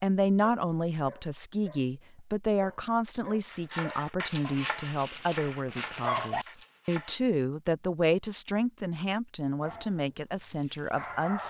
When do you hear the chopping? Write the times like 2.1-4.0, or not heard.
3.5-7.2.